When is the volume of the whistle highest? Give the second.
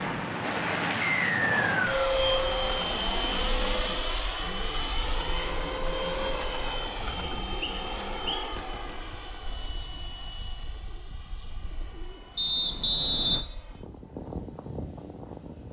13 s.